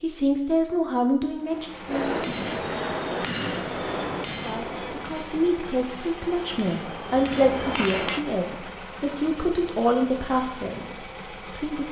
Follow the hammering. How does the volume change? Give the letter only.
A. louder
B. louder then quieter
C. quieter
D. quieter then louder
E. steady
D.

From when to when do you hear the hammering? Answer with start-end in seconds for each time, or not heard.
1.9-8.2.